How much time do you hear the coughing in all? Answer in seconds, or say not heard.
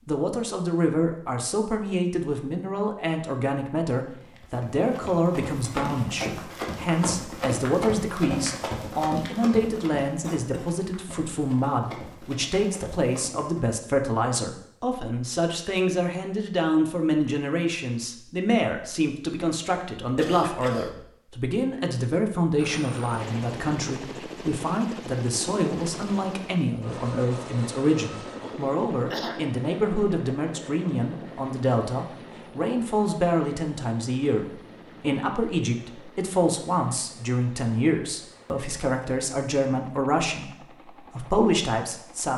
3 s.